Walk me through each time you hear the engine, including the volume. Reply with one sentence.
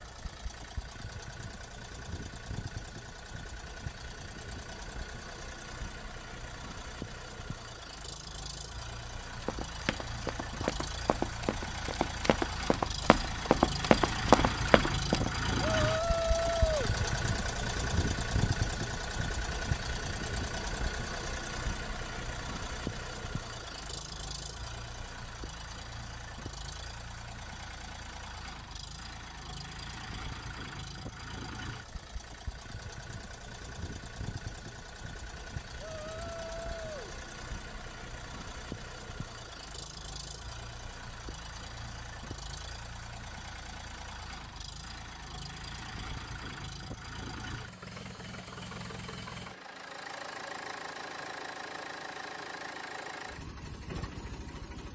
The engine can be heard from 0.0 to 54.9 s, getting louder then quieter.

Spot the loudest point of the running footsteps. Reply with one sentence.
The loudest moment of the running footsteps is at 14 seconds.